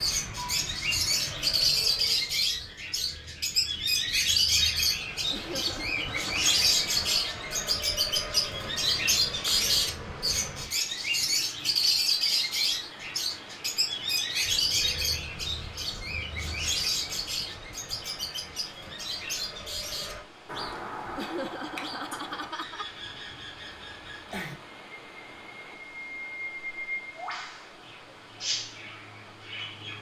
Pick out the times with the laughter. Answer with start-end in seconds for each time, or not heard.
5.3-6.6, 21.1-22.9.